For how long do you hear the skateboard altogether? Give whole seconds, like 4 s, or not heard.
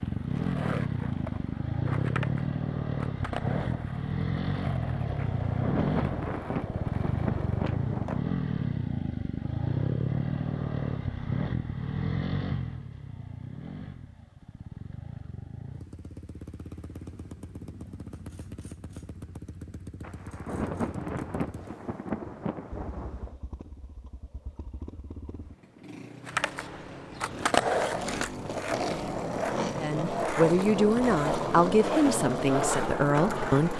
16 s.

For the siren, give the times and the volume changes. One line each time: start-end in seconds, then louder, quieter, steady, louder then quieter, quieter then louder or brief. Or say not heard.
not heard.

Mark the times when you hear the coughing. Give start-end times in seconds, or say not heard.
not heard.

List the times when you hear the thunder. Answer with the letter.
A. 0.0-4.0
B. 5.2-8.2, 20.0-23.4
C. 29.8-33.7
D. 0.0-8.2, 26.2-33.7
B.